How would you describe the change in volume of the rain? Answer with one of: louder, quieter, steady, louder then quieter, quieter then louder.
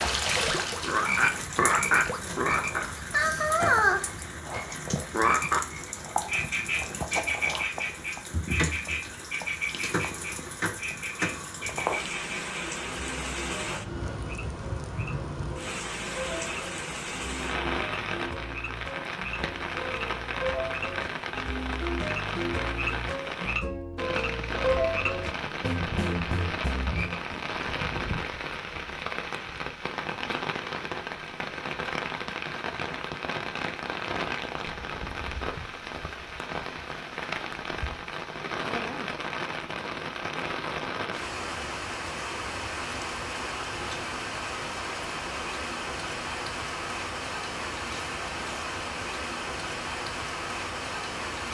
steady.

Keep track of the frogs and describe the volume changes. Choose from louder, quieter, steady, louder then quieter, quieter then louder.
quieter then louder.